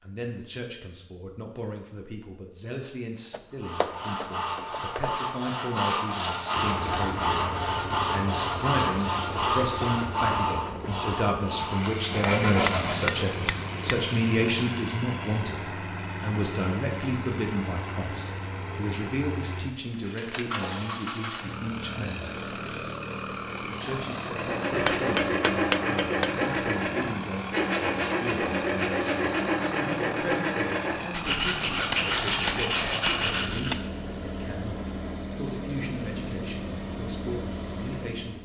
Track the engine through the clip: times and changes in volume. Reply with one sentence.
You can hear the engine from 6.5 to 38.3 s, at a steady volume.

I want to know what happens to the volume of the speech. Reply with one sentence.
The volume of the speech goes up, then down.